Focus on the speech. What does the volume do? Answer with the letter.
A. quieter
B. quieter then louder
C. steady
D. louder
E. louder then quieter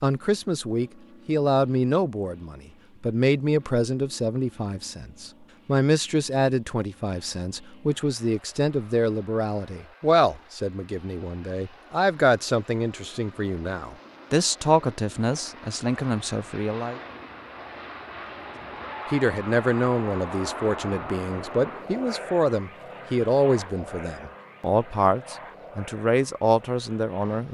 C.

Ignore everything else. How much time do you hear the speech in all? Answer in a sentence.
The speech can be heard for 25 seconds in total.